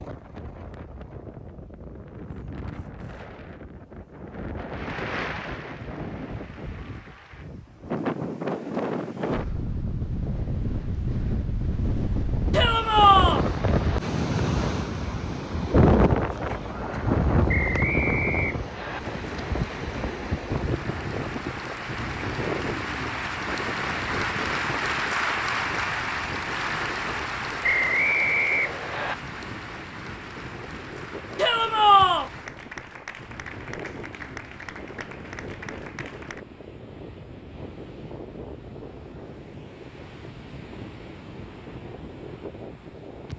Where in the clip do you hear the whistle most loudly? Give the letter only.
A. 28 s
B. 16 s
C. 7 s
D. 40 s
A.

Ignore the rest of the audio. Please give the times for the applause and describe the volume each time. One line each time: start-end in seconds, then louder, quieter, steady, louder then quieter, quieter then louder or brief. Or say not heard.
4.7-7.5 brief
18.9-36.5 louder then quieter.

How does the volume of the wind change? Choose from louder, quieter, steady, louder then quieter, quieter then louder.
louder then quieter.